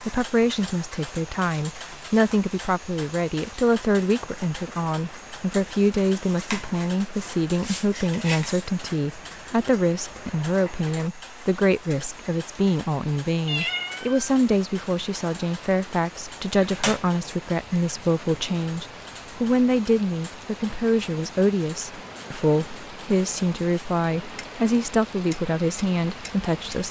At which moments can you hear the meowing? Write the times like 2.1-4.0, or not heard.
13.4-14.2.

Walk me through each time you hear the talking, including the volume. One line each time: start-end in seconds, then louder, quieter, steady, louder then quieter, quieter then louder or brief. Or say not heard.
0.0-26.8 steady.